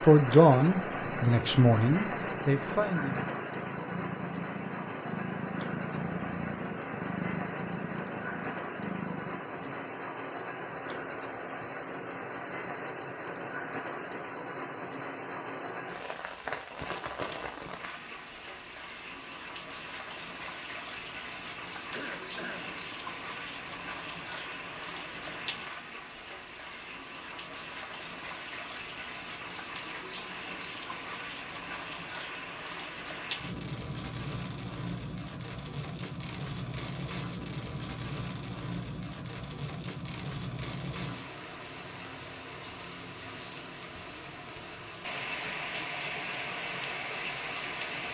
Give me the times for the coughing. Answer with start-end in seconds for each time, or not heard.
21.9-22.8.